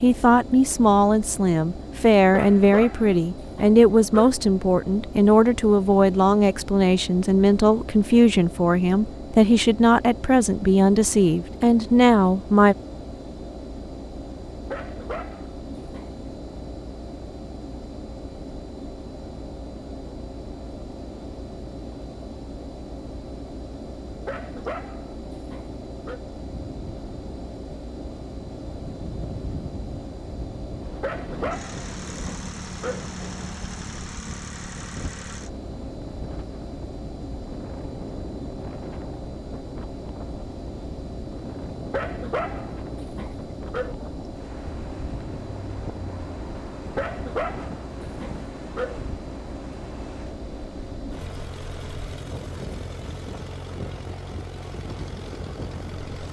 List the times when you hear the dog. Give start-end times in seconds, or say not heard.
2.3-4.3, 14.7-16.1, 24.2-26.2, 31.0-33.0, 41.9-44.0, 47.0-49.0.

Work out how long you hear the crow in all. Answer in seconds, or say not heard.
not heard.